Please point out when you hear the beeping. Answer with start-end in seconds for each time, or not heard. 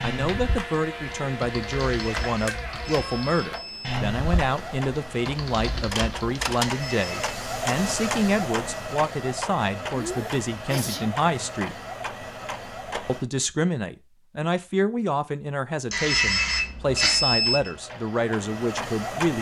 1.8-4.0, 6.6-7.3, 15.9-17.7.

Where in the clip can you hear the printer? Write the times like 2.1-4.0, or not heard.
0.0-13.2, 16.9-19.3.